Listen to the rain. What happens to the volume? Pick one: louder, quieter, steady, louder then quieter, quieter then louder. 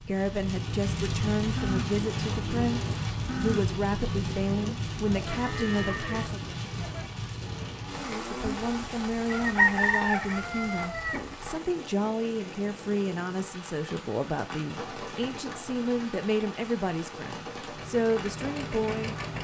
quieter.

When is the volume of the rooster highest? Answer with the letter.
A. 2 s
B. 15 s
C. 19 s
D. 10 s
D.